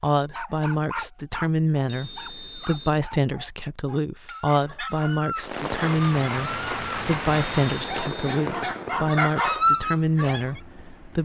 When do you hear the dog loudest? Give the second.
10 s.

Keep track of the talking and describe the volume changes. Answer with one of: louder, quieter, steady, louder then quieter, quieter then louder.
steady.